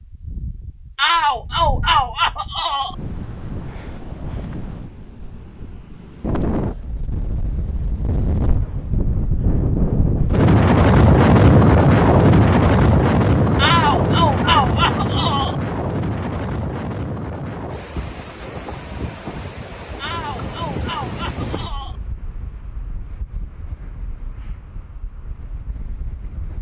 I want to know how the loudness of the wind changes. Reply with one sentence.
The volume of the wind goes up, then down.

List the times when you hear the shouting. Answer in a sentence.
The shouting can be heard from 0.9 to 3.0 s, from 13.6 to 15.6 s and from 19.9 to 21.9 s.